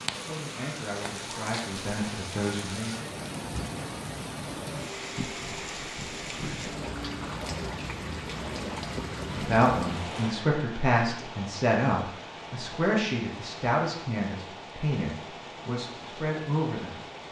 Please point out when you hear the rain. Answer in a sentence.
You can hear the rain from 0.0 to 17.2 s.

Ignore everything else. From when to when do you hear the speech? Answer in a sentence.
The speech can be heard from 0.1 to 3.0 s and from 9.2 to 17.0 s.